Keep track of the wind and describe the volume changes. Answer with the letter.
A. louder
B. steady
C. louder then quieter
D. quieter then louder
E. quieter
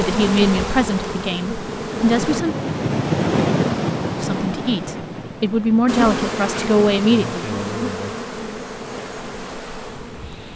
C.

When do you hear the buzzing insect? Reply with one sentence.
The buzzing insect can be heard from 0.0 to 2.4 s and from 5.8 to 10.5 s.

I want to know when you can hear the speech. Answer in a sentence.
You can hear the speech from 0.0 to 2.5 s and from 4.2 to 7.5 s.